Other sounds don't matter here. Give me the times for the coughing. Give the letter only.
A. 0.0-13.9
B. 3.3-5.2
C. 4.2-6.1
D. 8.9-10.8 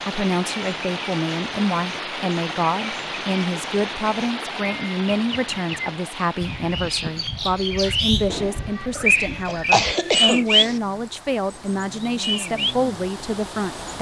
D.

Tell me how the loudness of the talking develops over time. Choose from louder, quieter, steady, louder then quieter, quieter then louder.
steady.